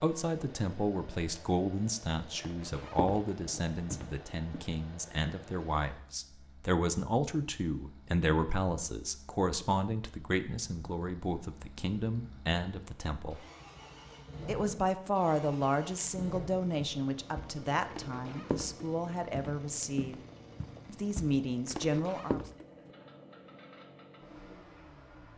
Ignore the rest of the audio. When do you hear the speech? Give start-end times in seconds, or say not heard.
0.0-13.4, 14.4-20.1, 20.9-22.4.